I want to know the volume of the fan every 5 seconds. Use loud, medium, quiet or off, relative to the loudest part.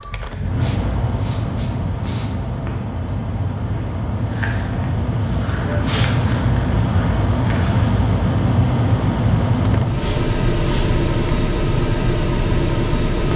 medium, loud, loud.